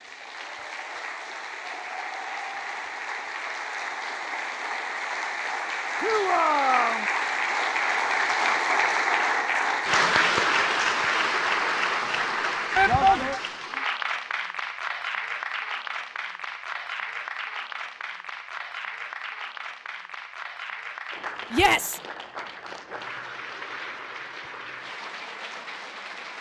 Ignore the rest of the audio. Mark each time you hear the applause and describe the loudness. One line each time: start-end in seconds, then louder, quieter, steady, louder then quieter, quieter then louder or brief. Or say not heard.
0.0-26.3 louder then quieter.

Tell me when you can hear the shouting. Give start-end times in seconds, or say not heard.
6.0-7.0, 12.8-13.4, 21.5-22.0.